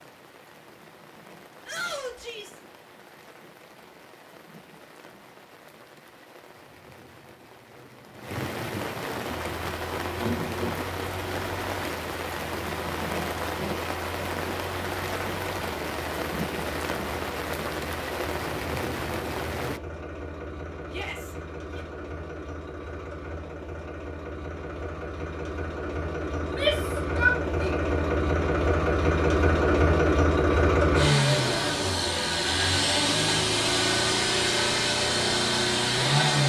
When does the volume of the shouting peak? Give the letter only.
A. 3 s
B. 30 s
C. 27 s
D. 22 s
C.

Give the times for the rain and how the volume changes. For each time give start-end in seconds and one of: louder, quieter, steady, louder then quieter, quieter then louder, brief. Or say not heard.
0.0-19.8 louder.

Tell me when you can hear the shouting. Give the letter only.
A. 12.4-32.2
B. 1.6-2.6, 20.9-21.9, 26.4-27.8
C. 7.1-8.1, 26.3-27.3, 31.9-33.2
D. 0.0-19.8
B.